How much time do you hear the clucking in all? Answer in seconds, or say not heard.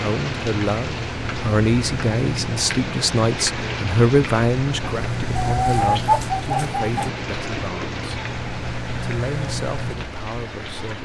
2 s.